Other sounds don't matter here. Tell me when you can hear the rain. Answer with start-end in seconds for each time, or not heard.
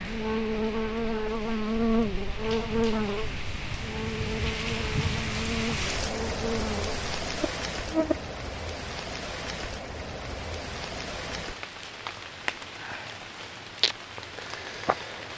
0.0-15.3.